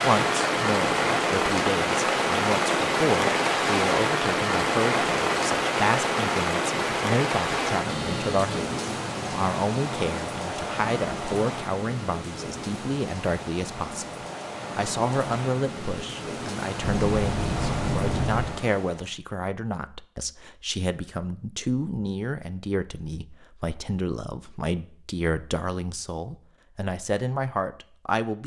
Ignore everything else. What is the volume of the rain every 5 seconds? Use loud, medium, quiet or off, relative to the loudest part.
loud, loud, medium, medium, off, off.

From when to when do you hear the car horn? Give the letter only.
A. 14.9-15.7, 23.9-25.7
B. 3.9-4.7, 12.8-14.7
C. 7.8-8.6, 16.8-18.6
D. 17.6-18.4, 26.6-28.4
C.